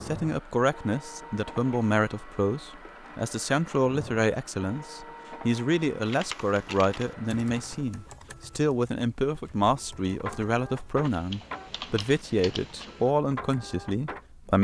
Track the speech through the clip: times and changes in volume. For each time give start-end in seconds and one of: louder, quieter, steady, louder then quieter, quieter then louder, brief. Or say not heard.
0.0-14.5 steady.